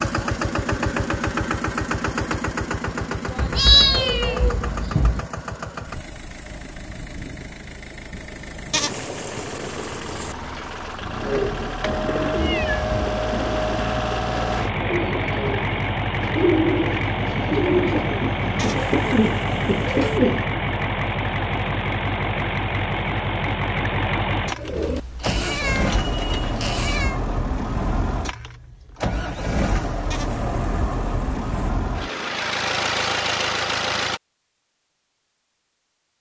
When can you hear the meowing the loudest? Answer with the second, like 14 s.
4 s.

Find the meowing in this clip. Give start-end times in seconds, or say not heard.
3.4-5.2, 12.3-12.9, 24.8-27.2.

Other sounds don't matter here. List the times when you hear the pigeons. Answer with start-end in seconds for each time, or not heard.
11.2-20.4, 24.6-26.6.